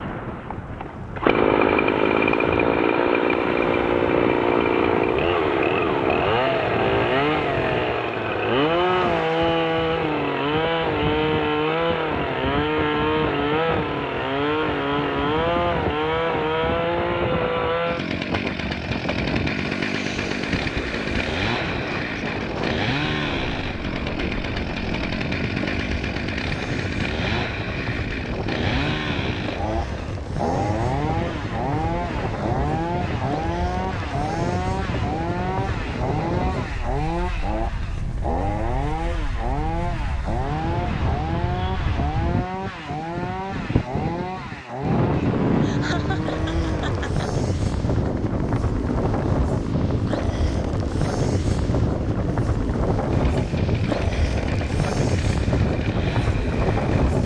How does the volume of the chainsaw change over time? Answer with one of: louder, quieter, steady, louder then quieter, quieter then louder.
quieter.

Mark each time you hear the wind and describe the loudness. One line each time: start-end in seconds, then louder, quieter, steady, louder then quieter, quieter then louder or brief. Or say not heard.
0.0-57.2 louder.